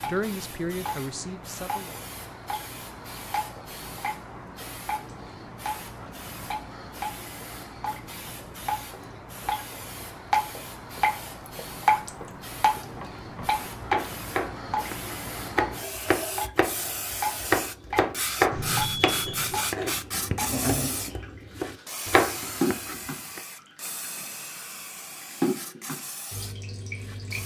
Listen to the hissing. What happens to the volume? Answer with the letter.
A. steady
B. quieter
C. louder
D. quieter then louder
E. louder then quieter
E.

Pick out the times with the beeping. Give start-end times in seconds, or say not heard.
18.5-19.6.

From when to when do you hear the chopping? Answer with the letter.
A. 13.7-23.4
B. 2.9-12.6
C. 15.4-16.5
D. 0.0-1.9
A.